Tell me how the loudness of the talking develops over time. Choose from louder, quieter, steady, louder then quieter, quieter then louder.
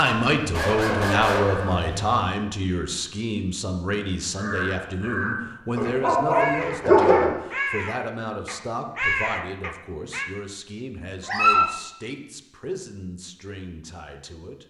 quieter.